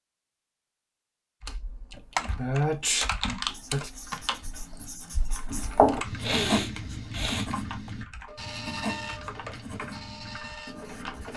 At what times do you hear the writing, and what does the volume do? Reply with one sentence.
You can hear the writing from 3.5 to 11.3 s, getting louder then quieter.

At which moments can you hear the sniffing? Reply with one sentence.
The sniffing can be heard from 1.9 to 3.9 s and from 6.2 to 7.9 s.